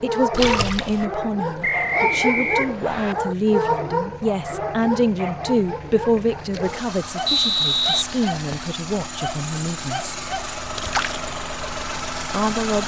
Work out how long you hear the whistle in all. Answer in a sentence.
The whistle can be heard for 3 seconds in total.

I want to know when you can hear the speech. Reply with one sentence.
The speech can be heard from 0.0 to 10.2 s and from 12.3 to 12.8 s.